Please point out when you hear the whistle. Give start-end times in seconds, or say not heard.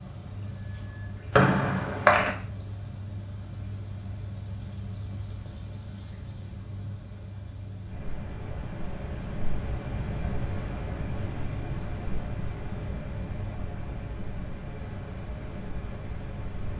1.3-2.4.